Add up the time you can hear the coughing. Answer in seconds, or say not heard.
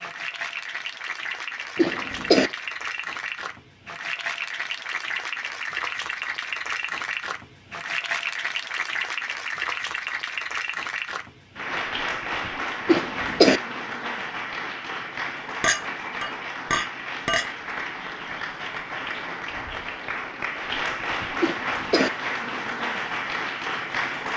2 s.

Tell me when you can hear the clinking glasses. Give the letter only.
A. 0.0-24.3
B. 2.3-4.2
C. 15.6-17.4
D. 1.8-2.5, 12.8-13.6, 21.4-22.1
C.